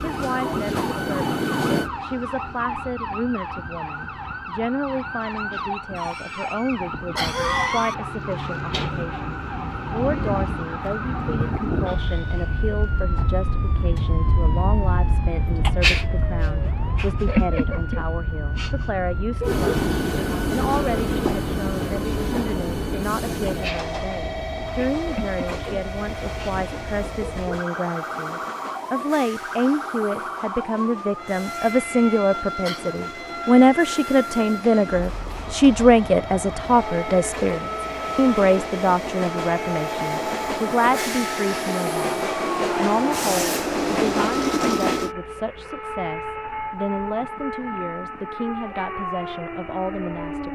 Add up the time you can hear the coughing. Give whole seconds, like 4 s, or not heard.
3 s.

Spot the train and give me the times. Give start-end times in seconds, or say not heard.
0.0-1.9, 19.4-45.1.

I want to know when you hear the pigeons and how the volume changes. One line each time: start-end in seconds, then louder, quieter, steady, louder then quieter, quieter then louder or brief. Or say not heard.
not heard.